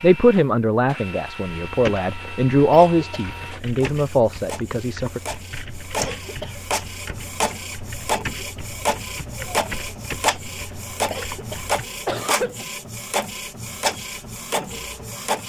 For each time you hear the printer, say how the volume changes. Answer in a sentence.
You can hear the printer from 0.0 to 15.4 s, getting louder.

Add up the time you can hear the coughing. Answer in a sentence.
The coughing can be heard for 3 seconds in total.